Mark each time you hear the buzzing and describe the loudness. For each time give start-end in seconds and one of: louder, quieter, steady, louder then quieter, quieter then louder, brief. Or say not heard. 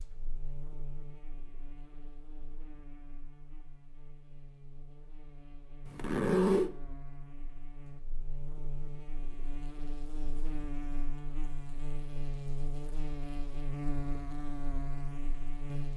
0.0-15.9 louder.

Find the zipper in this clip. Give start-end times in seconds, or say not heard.
5.8-6.7.